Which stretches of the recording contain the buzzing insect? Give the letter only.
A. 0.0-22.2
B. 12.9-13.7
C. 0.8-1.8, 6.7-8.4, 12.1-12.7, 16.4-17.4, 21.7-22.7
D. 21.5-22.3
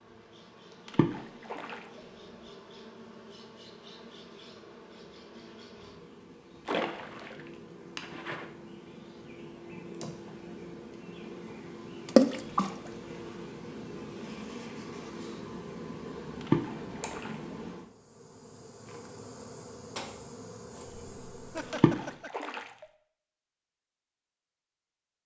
A.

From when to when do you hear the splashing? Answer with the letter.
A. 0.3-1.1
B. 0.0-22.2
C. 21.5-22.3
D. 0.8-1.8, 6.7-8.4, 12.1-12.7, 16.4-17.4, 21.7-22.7
D.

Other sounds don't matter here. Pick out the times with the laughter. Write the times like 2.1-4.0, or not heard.
21.5-22.3.